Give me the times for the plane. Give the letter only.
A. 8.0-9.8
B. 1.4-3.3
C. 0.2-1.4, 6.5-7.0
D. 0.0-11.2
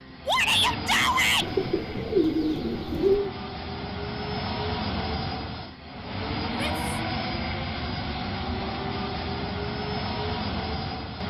D.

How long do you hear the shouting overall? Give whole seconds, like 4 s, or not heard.
2 s.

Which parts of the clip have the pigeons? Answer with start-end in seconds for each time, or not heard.
1.4-3.3.